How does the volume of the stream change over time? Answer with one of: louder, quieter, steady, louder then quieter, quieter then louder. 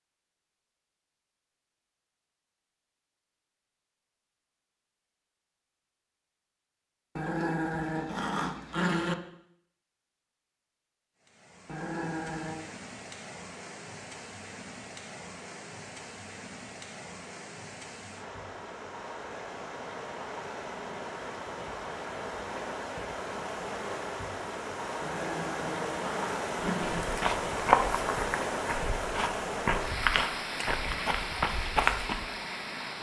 louder.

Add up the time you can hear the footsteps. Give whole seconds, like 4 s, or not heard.
6 s.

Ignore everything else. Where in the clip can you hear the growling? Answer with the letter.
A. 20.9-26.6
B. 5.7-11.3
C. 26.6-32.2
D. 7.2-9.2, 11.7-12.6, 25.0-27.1
D.